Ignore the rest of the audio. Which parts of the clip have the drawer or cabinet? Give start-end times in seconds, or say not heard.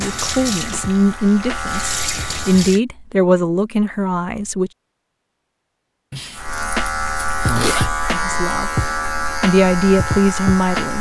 not heard.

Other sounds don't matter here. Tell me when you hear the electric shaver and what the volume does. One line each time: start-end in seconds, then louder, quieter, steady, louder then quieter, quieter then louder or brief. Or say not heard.
0.0-2.8 brief
6.3-10.9 steady.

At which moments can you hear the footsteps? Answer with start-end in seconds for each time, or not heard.
not heard.